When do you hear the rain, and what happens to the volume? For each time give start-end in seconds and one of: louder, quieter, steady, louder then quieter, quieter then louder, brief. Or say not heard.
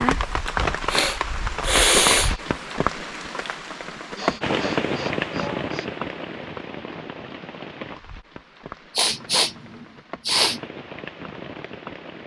0.0-12.2 quieter.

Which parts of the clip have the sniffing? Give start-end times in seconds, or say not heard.
0.5-2.4, 4.1-6.0, 8.9-10.6.